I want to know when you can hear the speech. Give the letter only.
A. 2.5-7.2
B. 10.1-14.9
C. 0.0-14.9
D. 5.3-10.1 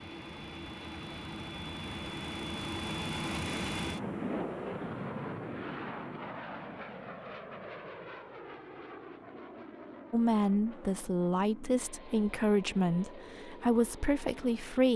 B.